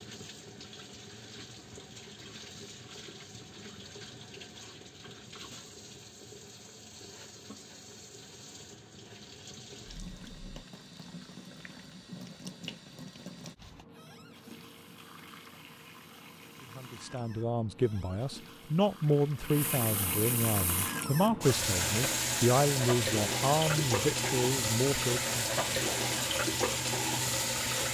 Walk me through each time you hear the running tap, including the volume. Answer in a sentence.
The running tap can be heard from 0.0 to 27.8 s, getting louder.